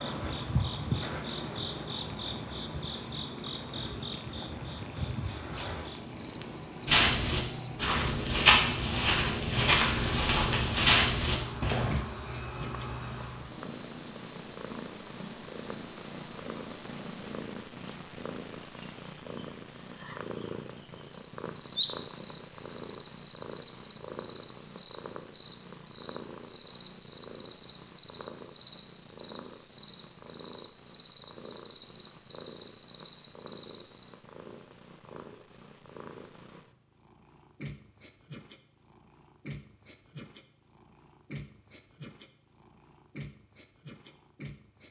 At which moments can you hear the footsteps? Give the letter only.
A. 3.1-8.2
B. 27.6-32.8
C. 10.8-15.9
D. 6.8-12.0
D.